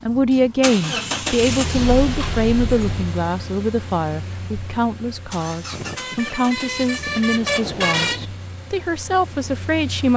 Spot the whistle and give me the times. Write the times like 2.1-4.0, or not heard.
not heard.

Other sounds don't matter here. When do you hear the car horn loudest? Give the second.
8 s.